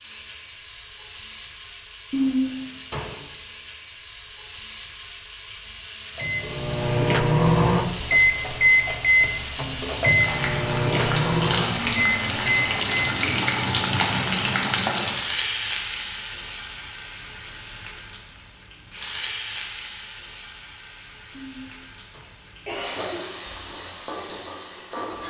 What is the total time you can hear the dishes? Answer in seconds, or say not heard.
not heard.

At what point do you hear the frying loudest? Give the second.
14 s.